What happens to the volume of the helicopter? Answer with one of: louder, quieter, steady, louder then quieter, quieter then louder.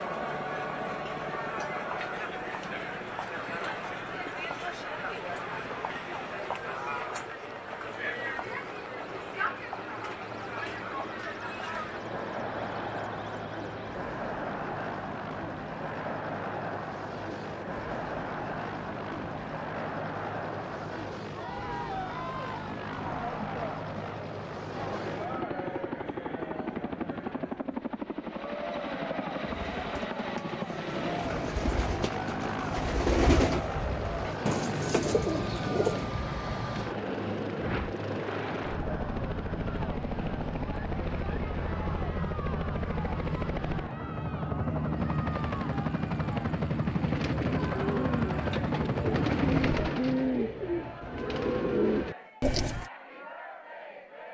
louder.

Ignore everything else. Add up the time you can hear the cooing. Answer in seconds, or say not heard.
13 s.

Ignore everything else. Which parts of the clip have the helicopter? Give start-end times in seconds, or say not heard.
0.0-50.0.